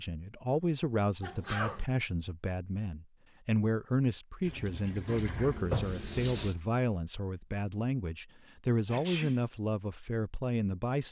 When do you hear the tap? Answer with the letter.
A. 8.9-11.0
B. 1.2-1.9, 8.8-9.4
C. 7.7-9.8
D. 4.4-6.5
D.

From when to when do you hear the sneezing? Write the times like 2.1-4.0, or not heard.
1.2-1.9, 8.8-9.4.